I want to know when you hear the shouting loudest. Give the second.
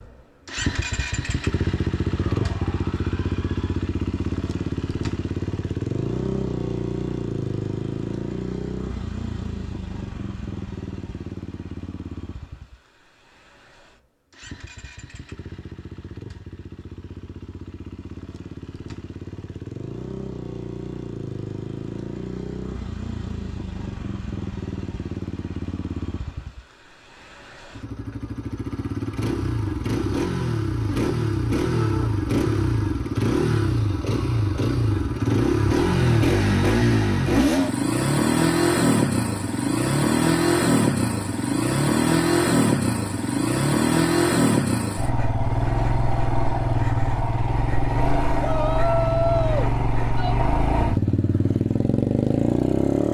49 s.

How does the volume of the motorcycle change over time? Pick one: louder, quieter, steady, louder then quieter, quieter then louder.
quieter then louder.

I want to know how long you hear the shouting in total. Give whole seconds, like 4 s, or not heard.
4 s.